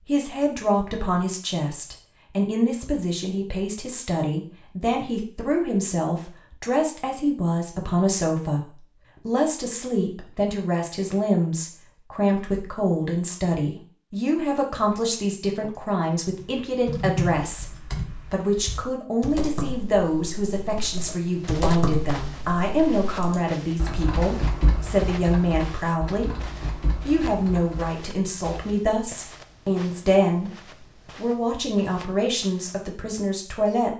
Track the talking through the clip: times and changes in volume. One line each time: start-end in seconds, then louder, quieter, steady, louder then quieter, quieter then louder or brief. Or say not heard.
0.1-33.9 steady.